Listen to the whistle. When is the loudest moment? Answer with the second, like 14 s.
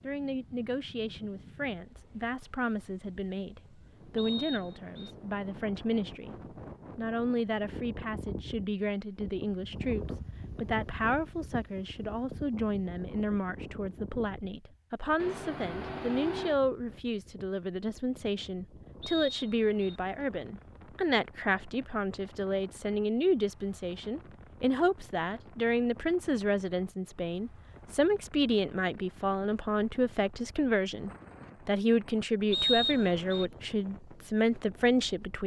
33 s.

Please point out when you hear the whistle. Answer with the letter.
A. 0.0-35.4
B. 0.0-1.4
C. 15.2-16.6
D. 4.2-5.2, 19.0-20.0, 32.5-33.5
D.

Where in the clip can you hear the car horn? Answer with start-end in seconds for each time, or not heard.
15.2-16.6.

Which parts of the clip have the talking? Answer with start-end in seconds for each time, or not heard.
0.0-35.4.